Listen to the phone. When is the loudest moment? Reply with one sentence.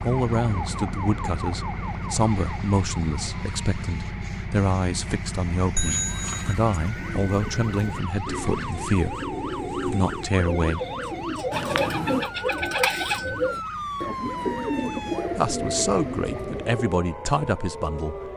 The loudest moment of the phone is at 6 seconds.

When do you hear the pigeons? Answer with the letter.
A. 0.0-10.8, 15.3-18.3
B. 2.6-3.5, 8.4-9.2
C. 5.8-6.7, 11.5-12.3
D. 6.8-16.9
D.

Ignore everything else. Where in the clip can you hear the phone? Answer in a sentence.
You can hear the phone from 5.8 to 6.7 s and from 11.5 to 12.3 s.